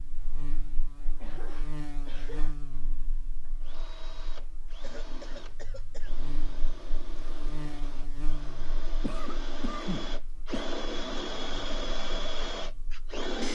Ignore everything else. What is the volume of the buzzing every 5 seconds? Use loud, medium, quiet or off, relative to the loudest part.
loud, loud, quiet.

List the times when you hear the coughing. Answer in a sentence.
You can hear the coughing from 1.2 to 2.5 s, from 4.8 to 6.2 s and from 9.0 to 10.7 s.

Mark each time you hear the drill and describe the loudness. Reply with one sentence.
The drill can be heard from 3.6 to 13.5 s, getting louder.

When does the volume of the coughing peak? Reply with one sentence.
The loudest moment of the coughing is at 10 seconds.